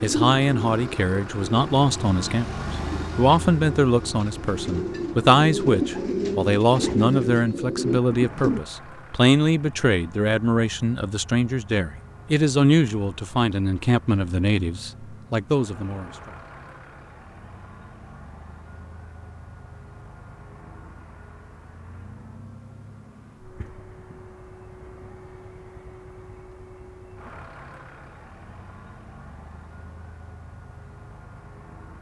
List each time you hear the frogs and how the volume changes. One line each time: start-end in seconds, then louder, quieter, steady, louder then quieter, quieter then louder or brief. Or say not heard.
not heard.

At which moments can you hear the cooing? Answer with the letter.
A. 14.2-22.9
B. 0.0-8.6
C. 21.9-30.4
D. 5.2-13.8
B.